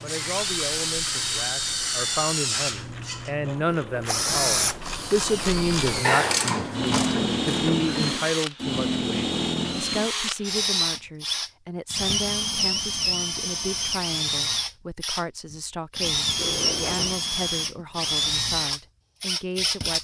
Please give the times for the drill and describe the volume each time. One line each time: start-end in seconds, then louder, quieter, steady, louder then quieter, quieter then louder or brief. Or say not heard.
0.0-19.9 steady.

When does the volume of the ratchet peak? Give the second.
6 s.